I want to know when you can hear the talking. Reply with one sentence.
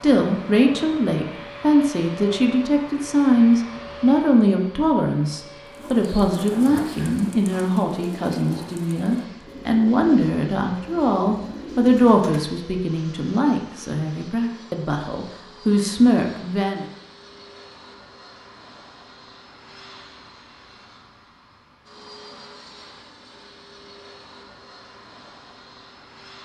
You can hear the talking from 0.0 to 16.9 s.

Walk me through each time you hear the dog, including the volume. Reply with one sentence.
The dog can't be heard in this clip.